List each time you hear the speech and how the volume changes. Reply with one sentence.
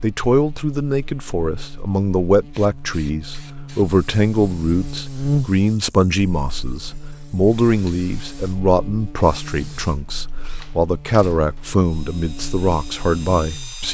The speech can be heard from 0.0 to 13.8 s, at a steady volume.